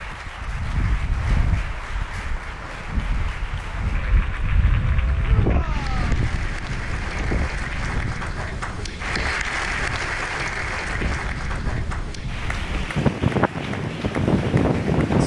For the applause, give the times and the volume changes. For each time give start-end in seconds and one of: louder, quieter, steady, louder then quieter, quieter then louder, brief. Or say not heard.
0.0-15.2 louder then quieter.